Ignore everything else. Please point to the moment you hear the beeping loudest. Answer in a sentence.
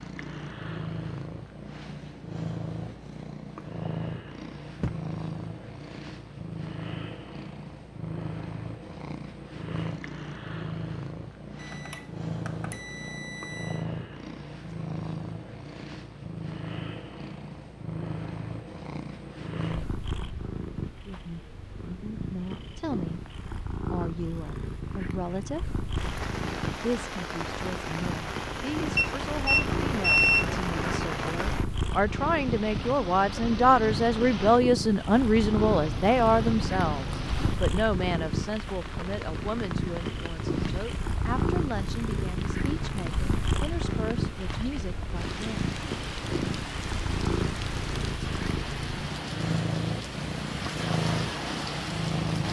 The loudest moment of the beeping is at 30 seconds.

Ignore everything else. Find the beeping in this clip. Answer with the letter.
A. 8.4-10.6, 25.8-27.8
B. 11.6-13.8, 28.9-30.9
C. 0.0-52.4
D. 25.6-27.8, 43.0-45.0
B.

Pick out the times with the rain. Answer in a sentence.
The rain can be heard from 25.9 to 52.4 s.